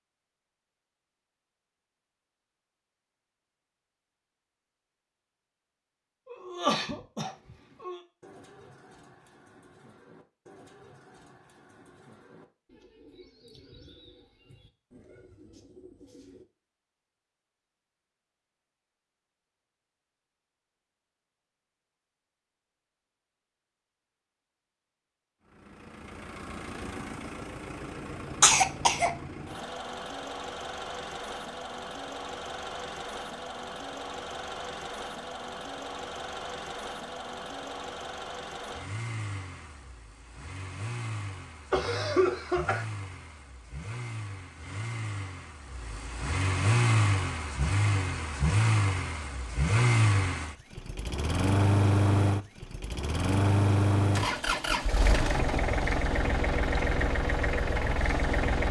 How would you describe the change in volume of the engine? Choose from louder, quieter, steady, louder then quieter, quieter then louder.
louder.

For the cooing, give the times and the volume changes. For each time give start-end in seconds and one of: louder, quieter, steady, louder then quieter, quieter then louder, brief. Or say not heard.
7.2-16.4 steady.